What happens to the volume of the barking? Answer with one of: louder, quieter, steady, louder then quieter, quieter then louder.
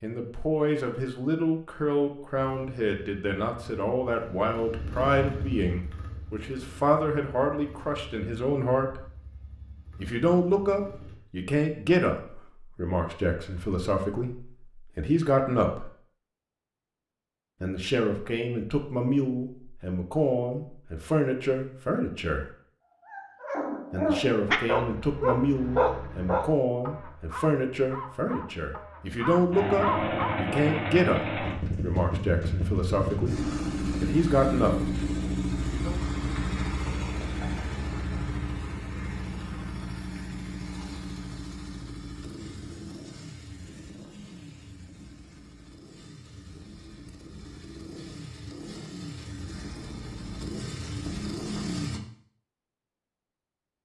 quieter then louder.